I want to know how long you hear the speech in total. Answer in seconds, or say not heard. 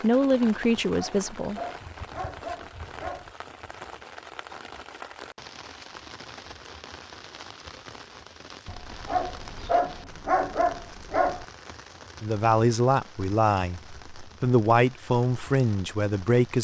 6 s.